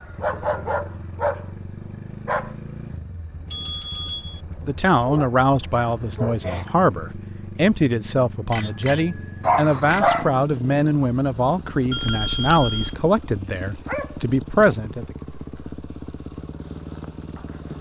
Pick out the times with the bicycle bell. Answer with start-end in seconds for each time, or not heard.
3.5-4.4, 8.5-10.2, 11.9-12.9.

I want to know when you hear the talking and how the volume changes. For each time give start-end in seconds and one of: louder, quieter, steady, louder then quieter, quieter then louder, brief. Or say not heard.
4.7-15.2 steady.